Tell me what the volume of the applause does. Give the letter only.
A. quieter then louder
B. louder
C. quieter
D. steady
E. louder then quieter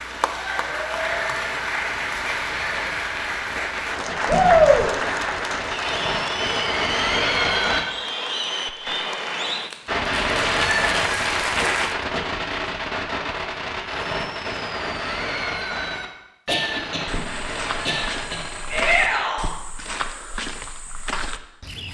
D.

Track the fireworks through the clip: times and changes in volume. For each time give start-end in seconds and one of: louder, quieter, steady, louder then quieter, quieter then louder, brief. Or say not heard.
0.0-7.8 louder
9.8-19.2 quieter.